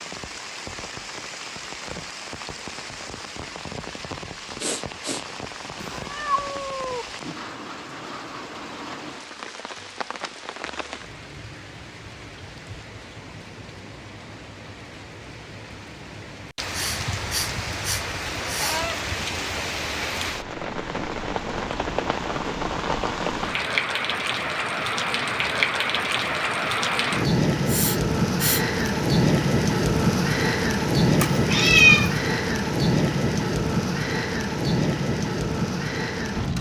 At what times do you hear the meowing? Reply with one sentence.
The meowing can be heard from 5.8 to 7.0 s, from 18.6 to 19.0 s and from 31.2 to 32.1 s.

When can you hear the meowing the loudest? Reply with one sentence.
The volume of the meowing peaks at 32 seconds.